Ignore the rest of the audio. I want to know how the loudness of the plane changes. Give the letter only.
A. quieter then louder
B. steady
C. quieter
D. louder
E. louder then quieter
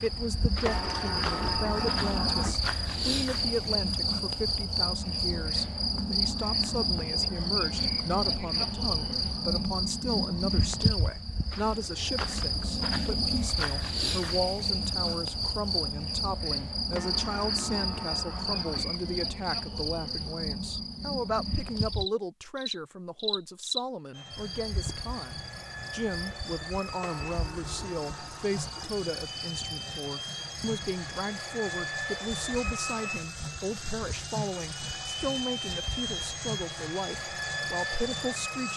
D.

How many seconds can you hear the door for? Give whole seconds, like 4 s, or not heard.
6 s.